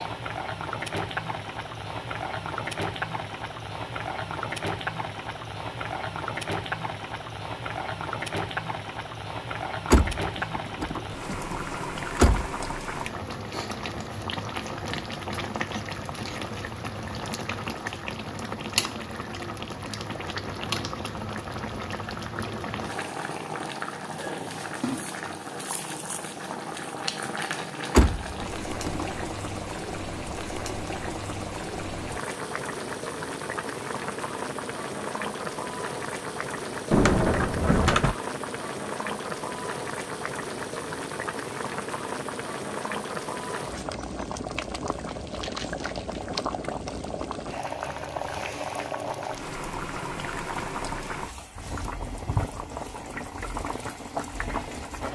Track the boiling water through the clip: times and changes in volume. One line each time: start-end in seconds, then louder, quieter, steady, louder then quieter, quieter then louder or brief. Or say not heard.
0.0-55.1 steady.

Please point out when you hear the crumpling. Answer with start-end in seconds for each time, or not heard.
45.0-46.4.